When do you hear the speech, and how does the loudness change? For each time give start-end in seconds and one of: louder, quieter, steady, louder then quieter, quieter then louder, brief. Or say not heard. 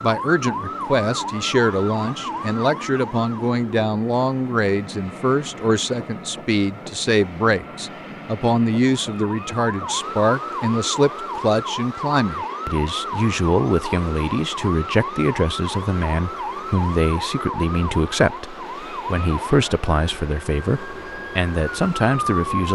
0.0-22.6 steady.